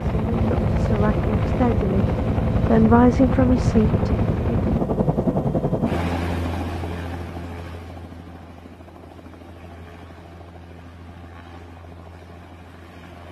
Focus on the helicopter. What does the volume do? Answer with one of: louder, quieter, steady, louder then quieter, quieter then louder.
quieter.